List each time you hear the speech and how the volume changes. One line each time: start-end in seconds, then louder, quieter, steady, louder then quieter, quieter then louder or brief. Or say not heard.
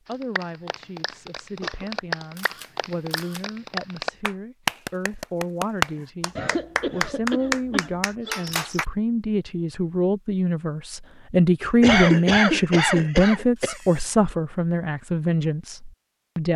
0.1-16.5 louder.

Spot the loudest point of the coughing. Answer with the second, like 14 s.
12 s.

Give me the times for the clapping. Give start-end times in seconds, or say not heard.
0.1-8.8.